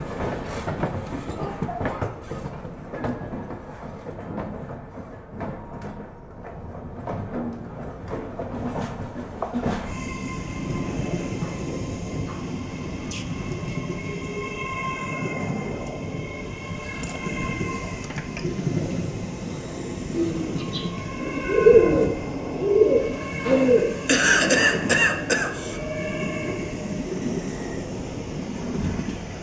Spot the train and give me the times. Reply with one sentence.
The train can be heard from 0.0 to 29.3 s.